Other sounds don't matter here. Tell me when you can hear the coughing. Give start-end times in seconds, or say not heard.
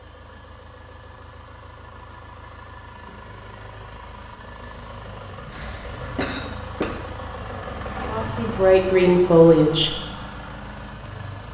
5.5-7.0.